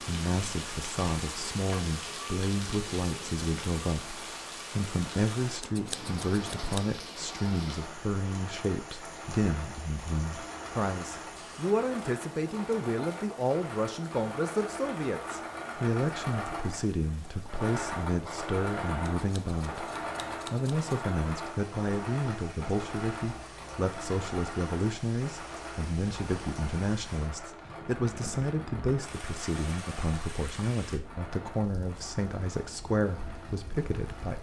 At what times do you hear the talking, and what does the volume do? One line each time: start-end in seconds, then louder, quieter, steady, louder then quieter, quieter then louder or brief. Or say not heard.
0.1-34.3 steady.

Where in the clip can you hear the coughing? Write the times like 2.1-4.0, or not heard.
not heard.